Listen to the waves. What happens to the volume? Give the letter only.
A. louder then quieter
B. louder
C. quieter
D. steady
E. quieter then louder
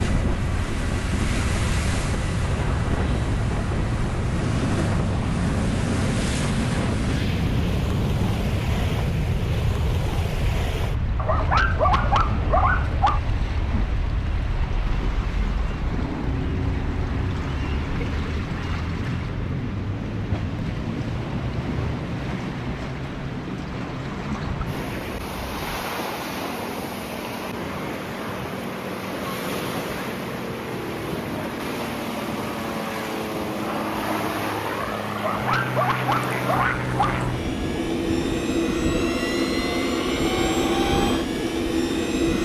D.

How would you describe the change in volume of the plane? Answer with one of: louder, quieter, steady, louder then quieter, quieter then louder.
quieter then louder.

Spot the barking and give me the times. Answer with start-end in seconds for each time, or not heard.
11.2-13.2, 35.1-37.1.